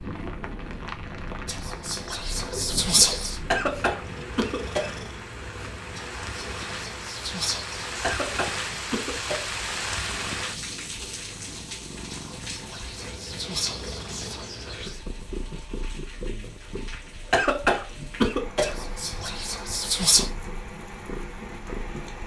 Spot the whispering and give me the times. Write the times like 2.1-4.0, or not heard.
1.4-3.4, 6.0-8.0, 12.1-15.0, 18.6-20.3.